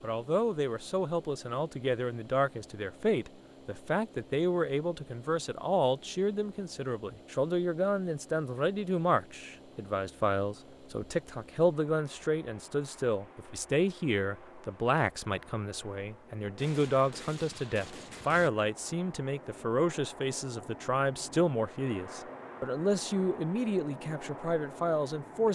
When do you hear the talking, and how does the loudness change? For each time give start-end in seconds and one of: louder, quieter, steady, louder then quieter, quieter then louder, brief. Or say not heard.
0.0-25.5 steady.